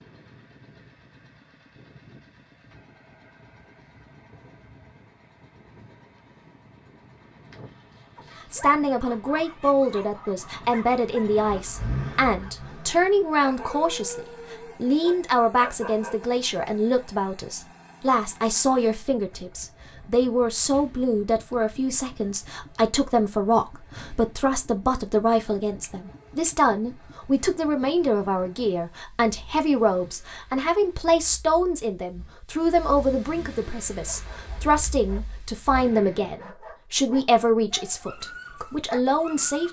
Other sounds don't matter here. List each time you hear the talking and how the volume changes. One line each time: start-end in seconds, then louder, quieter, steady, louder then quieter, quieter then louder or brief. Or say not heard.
8.5-39.6 steady.